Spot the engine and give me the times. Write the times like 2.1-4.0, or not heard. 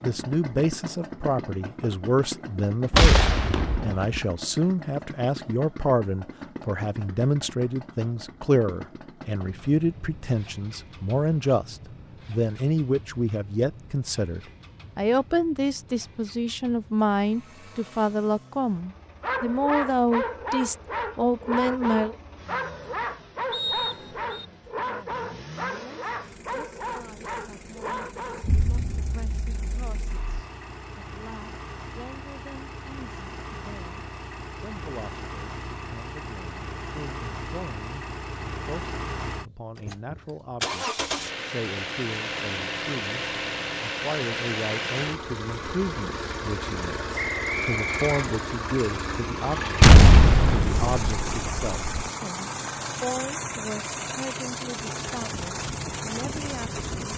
0.0-57.1.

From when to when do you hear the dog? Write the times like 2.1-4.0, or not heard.
19.2-28.8.